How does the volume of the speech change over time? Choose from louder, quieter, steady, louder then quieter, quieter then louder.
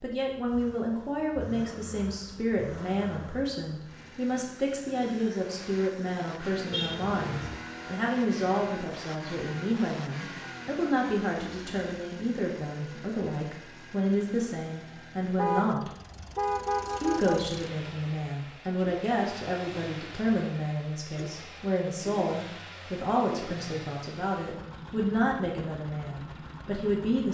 steady.